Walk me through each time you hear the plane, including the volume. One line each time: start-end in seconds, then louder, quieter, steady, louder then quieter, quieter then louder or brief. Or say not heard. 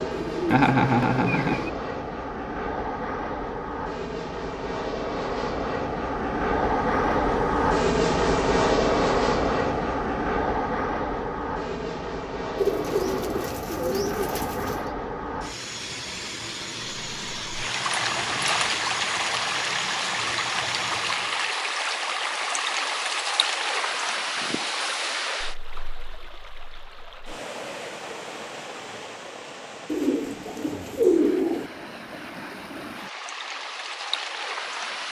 0.0-21.6 louder then quieter.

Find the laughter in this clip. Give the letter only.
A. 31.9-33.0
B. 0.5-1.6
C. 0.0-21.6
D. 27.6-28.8
B.